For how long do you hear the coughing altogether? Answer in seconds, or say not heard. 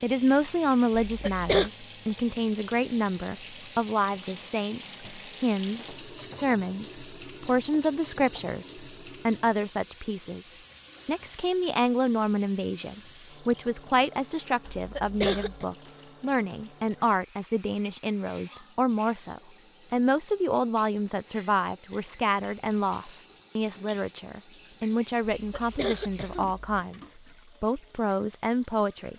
3 s.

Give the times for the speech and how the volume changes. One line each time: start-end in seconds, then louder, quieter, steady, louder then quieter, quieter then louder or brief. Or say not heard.
0.0-27.0 steady
27.6-29.1 brief.